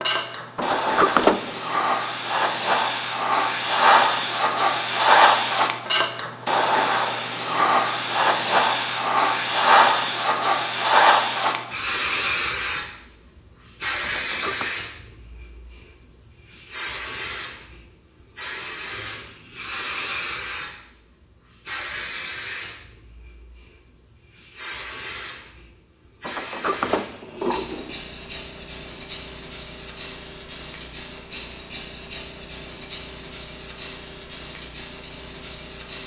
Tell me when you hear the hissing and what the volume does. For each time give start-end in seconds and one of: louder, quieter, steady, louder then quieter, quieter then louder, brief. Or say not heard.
0.0-36.0 quieter.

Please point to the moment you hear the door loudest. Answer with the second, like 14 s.
1 s.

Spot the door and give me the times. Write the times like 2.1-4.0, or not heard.
0.6-1.6, 14.0-14.8, 26.2-28.0.